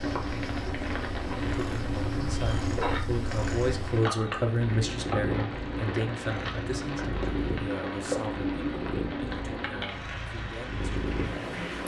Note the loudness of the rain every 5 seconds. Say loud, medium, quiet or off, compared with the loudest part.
loud, loud, medium.